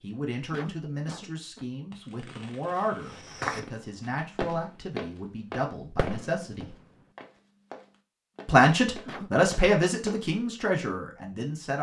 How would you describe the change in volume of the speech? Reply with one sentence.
The loudness of the speech goes up, then down.